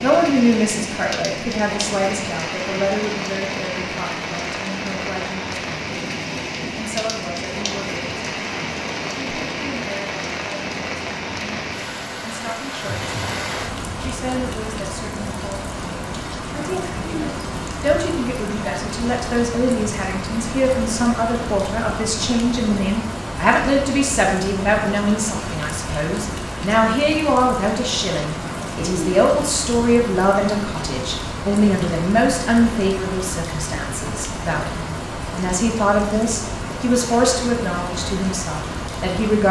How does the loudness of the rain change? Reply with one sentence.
The loudness of the rain stays about the same.